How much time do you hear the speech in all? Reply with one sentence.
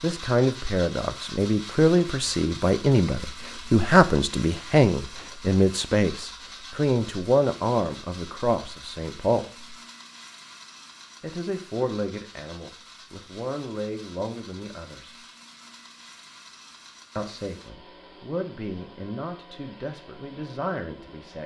You can hear the speech for 18 seconds altogether.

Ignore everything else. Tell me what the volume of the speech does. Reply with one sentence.
The loudness of the speech goes down.